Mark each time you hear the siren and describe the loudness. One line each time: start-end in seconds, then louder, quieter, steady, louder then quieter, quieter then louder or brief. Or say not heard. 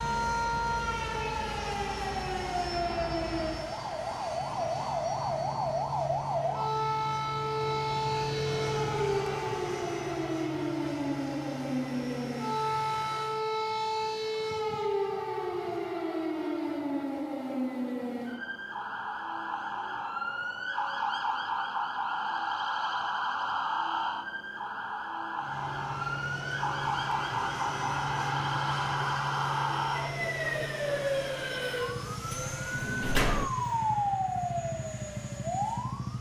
0.0-36.1 steady.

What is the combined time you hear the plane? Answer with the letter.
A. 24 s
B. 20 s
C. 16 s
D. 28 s
A.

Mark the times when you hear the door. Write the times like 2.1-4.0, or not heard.
32.3-33.5.